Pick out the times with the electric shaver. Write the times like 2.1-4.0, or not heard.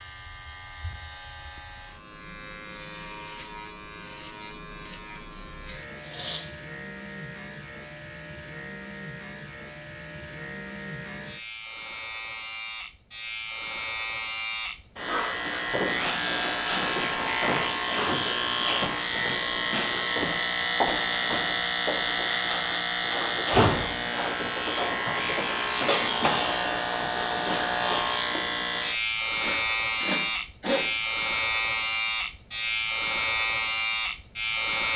0.0-34.9.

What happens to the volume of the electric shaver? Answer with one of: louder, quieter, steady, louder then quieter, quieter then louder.
louder.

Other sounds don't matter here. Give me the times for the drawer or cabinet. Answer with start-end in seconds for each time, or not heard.
not heard.